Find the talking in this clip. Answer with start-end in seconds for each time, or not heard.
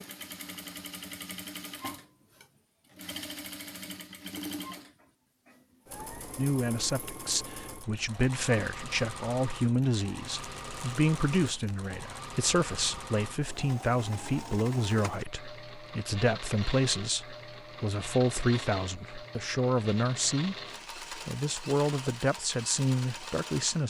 6.3-23.8.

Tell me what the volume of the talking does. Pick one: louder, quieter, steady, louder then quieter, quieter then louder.
steady.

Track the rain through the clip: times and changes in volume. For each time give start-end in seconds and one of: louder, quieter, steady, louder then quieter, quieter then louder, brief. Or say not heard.
not heard.